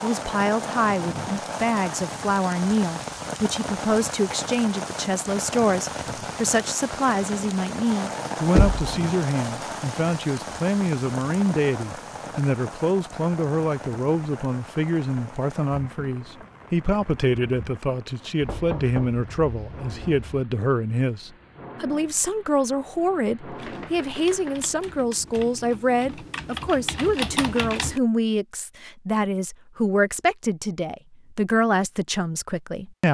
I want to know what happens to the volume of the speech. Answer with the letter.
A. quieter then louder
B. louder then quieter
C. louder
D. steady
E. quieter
D.